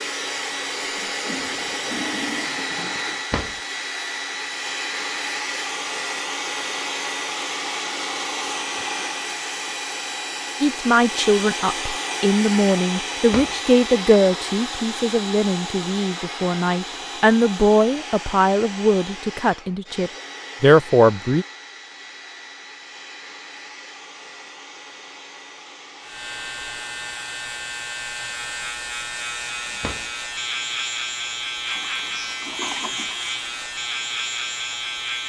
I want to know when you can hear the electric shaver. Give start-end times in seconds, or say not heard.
26.0-35.2.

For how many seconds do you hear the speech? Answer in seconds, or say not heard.
11 s.